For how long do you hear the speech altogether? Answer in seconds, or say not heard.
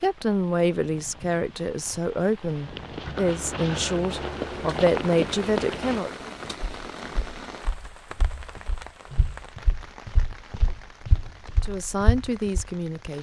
8 s.